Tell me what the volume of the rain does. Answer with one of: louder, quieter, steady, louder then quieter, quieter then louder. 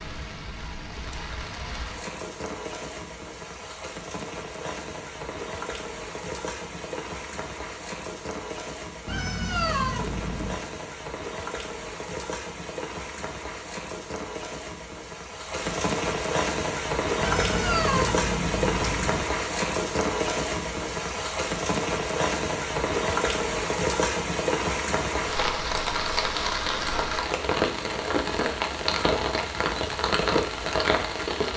louder.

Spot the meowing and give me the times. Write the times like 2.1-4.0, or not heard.
9.1-10.6, 17.2-19.2.